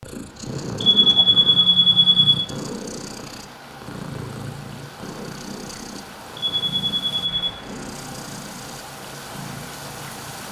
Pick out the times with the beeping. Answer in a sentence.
The beeping can be heard from 0.8 to 2.5 s and from 6.3 to 7.5 s.